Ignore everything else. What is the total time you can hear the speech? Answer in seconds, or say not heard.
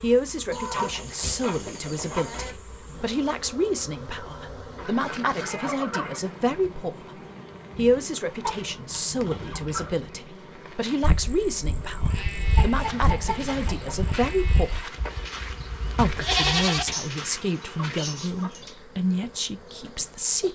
19 s.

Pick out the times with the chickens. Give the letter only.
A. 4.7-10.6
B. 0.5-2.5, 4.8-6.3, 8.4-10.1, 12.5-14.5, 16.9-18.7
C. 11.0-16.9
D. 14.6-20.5
B.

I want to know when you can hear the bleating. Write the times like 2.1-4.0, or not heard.
11.0-16.9.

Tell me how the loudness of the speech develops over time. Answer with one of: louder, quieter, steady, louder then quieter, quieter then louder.
steady.